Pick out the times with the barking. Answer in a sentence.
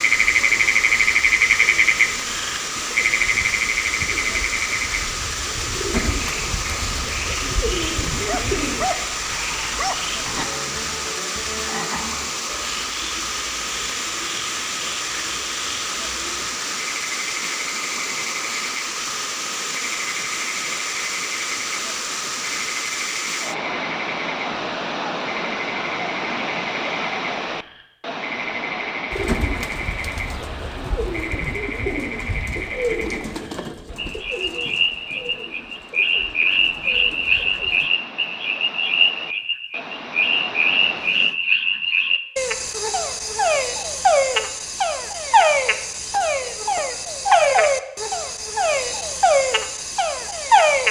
You can hear the barking from 8.1 to 10.4 s.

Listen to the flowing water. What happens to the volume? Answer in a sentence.
The volume of the flowing water goes down.